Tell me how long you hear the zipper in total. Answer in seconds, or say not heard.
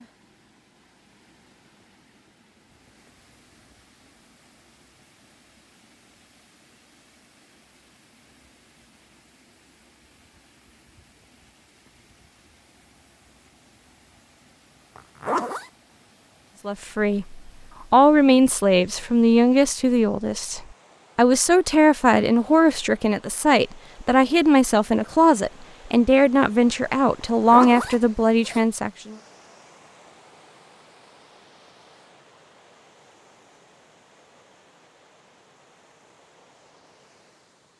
2 s.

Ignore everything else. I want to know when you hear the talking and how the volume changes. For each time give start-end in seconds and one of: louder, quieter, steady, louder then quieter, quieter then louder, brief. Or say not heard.
16.6-29.1 steady.